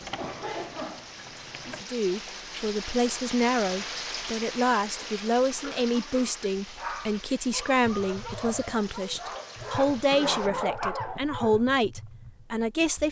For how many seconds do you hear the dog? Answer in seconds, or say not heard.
5 s.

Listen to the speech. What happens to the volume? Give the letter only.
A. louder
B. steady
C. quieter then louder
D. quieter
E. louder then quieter
B.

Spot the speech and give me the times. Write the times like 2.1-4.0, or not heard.
1.8-13.0.